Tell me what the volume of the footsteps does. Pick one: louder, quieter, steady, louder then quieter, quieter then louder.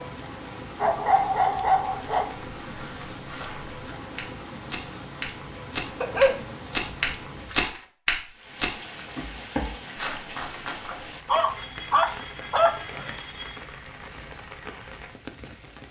louder then quieter.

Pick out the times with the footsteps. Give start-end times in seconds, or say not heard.
1.9-11.2.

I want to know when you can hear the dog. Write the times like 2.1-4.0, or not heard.
0.8-2.4, 6.0-6.4, 11.2-13.2.